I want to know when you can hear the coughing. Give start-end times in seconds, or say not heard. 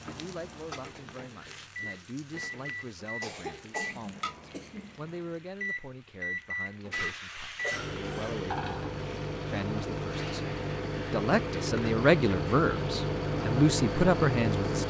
3.2-5.0, 7.6-8.4.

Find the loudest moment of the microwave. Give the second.
14 s.